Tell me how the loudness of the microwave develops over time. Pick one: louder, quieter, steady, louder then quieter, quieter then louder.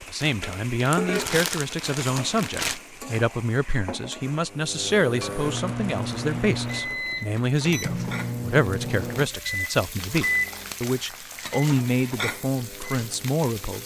quieter.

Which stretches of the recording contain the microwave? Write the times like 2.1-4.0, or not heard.
4.5-13.8.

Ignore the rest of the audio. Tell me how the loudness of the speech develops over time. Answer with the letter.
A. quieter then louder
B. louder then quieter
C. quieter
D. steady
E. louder
D.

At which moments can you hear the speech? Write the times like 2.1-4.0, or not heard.
0.0-13.8.